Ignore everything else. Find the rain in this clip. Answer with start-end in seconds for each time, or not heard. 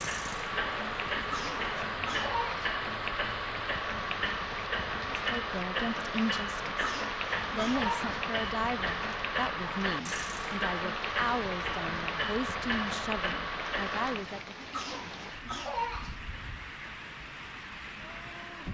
0.0-18.6.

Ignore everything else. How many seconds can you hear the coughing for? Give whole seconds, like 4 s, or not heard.
5 s.